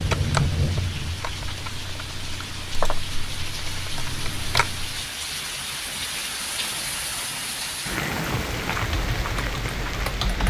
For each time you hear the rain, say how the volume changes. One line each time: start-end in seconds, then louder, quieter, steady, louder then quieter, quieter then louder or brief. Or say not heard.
0.0-10.4 louder.